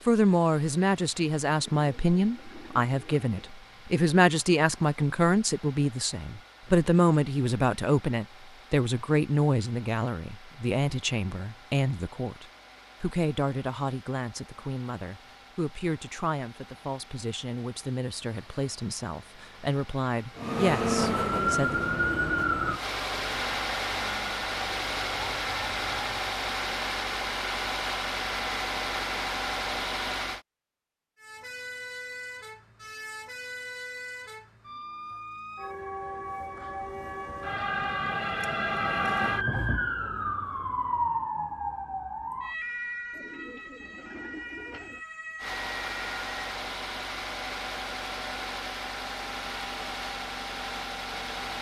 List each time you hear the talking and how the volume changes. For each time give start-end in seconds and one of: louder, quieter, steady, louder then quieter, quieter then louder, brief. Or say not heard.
0.1-21.8 quieter.